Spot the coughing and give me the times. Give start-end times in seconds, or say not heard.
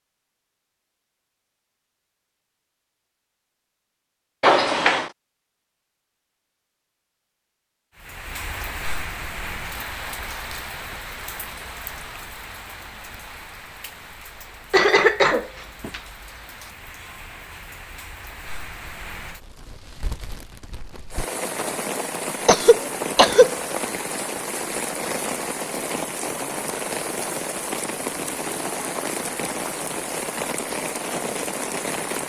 4.4-5.1, 14.7-16.0, 22.4-23.5.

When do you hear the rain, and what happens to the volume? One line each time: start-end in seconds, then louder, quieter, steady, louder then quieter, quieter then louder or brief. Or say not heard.
8.0-32.2 quieter then louder.